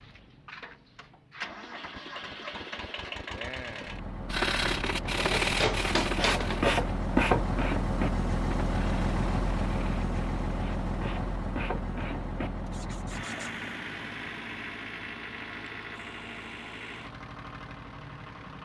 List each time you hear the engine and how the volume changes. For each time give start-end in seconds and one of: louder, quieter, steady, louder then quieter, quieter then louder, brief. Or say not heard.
0.0-18.6 louder then quieter.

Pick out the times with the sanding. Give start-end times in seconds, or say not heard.
4.3-13.5.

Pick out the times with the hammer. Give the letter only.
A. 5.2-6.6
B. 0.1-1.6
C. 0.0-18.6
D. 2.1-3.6
A.